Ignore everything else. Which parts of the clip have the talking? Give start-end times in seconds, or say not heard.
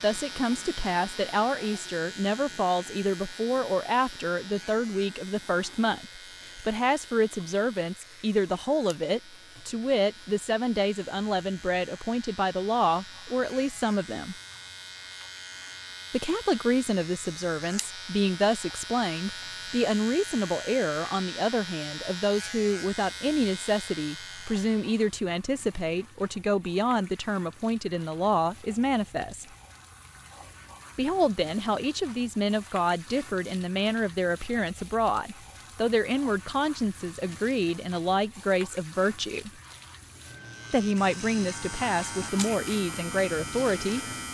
0.0-14.3, 16.1-29.4, 30.9-39.5, 40.7-44.0.